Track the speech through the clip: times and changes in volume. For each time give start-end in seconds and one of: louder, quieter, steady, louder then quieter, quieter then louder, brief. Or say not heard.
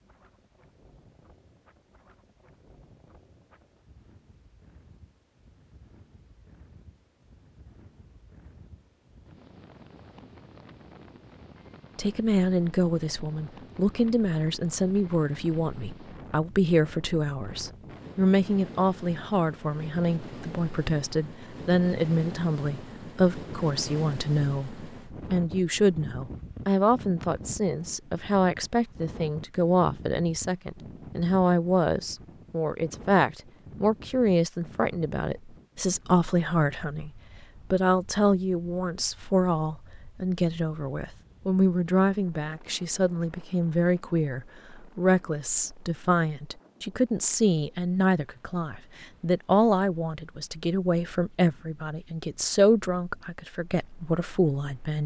11.9-37.1 steady
37.7-55.0 steady.